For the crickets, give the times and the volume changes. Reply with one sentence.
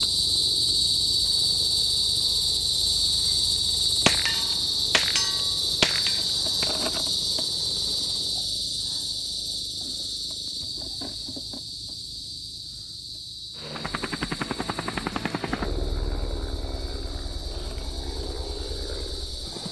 The crickets can be heard from 0.0 to 19.6 s, getting quieter.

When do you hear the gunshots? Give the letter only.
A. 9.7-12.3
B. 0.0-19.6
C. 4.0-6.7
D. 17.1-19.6
C.